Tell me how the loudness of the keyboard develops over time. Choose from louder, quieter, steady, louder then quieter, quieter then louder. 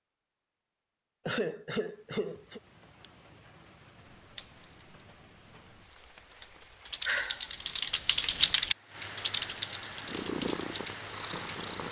louder then quieter.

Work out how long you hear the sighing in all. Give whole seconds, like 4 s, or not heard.
2 s.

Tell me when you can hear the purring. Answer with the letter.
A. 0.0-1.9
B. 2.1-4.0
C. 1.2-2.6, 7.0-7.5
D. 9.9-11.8
D.